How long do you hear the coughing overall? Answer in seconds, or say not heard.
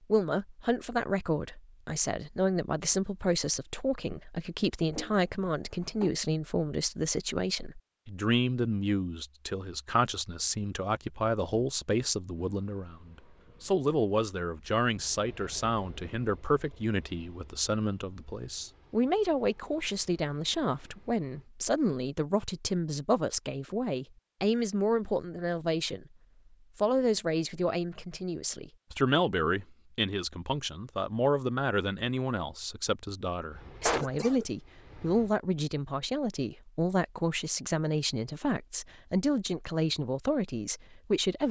2 s.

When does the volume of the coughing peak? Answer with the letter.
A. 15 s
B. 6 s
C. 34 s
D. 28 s
C.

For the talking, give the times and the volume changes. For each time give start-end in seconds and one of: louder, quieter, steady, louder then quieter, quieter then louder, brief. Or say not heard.
0.1-26.1 steady
26.8-41.4 steady.